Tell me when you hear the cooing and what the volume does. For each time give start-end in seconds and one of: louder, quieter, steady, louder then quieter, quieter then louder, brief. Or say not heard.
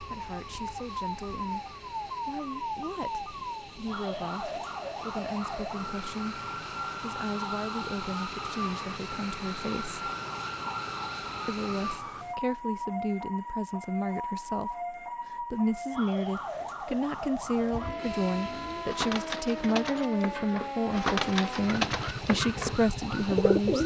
17.5-23.8 louder.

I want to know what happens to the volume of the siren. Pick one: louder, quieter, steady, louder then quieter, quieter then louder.
steady.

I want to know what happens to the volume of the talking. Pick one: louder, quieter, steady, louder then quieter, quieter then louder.
louder.